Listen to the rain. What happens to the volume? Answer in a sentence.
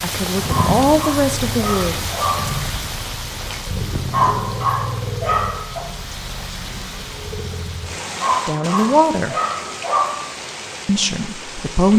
The volume of the rain goes down.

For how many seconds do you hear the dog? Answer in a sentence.
The dog can be heard for 6 seconds in total.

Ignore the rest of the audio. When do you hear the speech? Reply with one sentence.
You can hear the speech from 0.0 to 1.9 s, from 8.4 to 9.3 s and from 10.8 to 11.9 s.